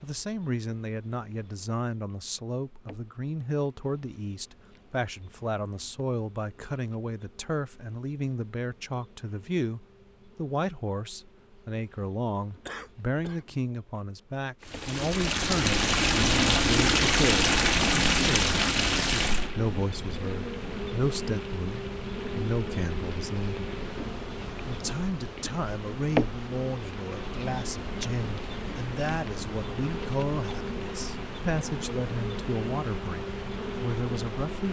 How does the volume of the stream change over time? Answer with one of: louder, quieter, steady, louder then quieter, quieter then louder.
quieter.